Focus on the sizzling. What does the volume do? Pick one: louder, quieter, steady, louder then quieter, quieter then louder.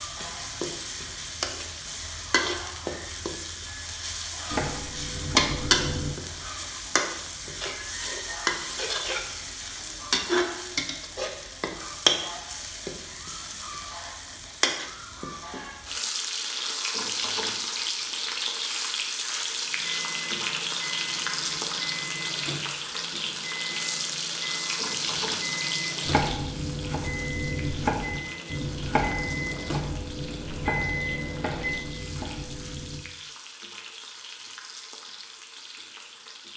quieter.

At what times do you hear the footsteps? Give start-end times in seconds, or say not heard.
not heard.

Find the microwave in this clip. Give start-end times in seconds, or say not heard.
19.6-31.9.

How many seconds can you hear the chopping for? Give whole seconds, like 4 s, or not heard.
9 s.